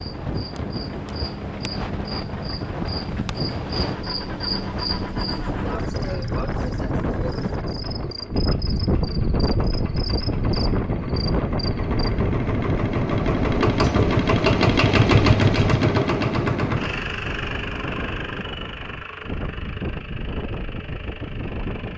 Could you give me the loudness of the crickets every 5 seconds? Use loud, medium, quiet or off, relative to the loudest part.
loud, loud, loud, off, off.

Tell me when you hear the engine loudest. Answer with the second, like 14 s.
15 s.